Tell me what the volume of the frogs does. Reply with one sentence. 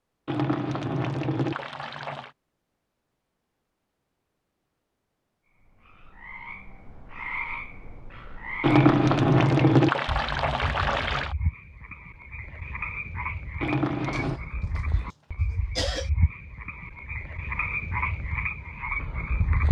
The volume of the frogs goes up.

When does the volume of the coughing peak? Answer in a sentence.
The volume of the coughing peaks at 16 seconds.